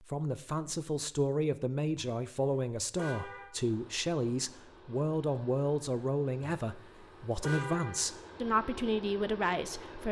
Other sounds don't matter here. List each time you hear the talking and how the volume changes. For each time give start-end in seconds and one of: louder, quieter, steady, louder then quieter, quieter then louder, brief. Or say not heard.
0.1-10.0 steady.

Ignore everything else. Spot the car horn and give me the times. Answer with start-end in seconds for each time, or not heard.
1.9-3.5, 6.4-8.1.